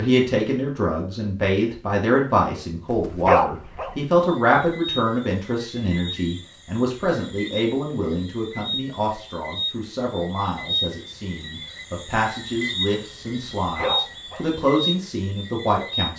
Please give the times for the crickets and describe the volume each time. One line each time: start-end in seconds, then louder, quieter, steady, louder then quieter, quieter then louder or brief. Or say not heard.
4.2-16.1 louder.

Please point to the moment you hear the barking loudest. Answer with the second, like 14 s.
3 s.